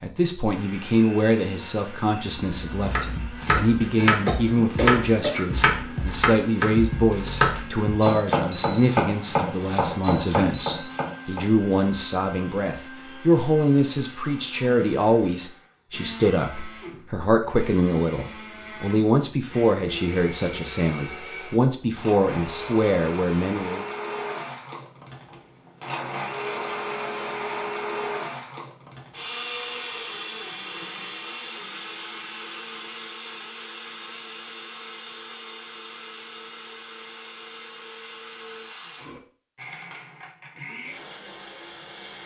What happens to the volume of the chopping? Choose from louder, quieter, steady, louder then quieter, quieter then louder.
steady.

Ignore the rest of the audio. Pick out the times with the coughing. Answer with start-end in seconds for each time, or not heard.
4.2-5.7.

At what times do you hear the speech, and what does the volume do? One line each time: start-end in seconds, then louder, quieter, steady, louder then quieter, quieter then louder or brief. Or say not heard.
0.0-23.9 steady.